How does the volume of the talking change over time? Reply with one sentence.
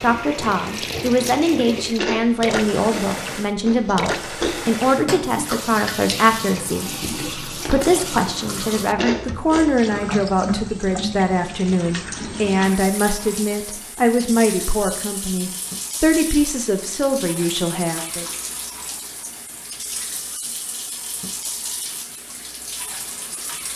The loudness of the talking stays about the same.